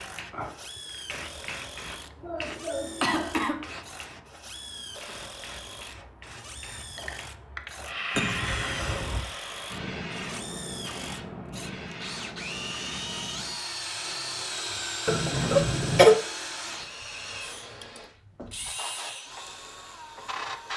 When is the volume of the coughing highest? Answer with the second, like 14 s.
16 s.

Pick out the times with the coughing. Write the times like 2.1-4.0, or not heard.
1.8-3.6, 8.2-9.2, 15.1-16.1.